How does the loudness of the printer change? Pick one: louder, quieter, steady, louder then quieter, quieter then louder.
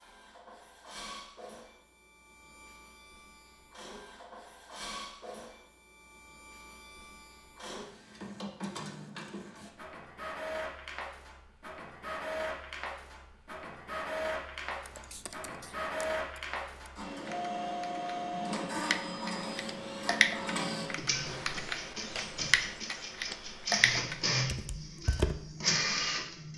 louder.